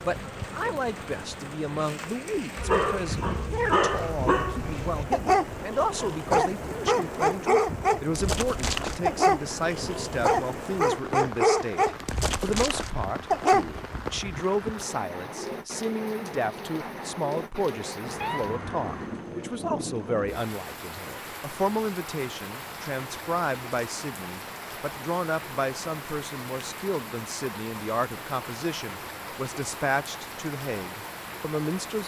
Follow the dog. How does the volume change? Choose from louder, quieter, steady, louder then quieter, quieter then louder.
steady.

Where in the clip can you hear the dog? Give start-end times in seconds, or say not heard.
2.5-13.8.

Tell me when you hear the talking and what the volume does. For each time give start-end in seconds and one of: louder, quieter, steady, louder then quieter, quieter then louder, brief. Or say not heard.
0.0-32.0 steady.